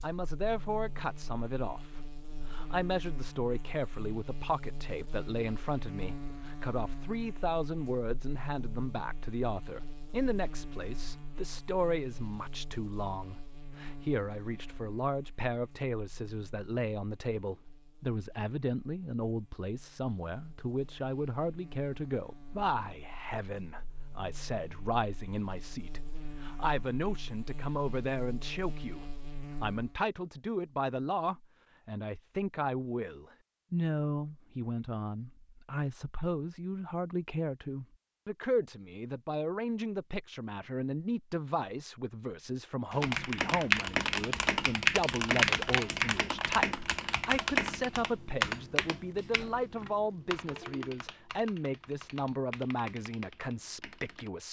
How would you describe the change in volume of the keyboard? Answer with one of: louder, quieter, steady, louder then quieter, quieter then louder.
quieter.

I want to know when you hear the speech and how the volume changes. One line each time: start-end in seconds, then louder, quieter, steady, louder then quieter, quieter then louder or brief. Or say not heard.
0.0-54.4 steady.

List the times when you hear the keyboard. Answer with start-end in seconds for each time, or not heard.
42.9-54.3.